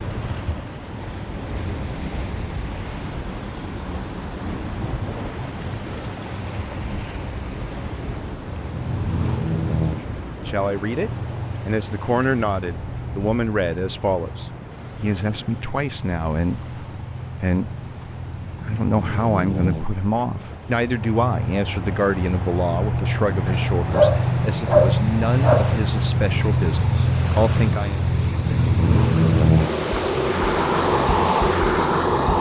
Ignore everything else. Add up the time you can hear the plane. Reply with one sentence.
The plane can be heard for 24 seconds in total.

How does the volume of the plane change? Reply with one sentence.
The volume of the plane goes down, then up.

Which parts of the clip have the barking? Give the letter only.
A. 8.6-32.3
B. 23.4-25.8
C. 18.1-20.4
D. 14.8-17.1
B.